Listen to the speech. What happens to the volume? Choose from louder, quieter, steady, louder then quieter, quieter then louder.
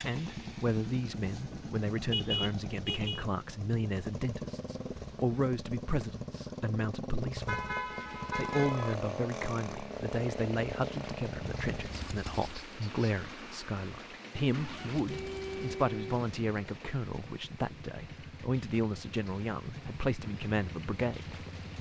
steady.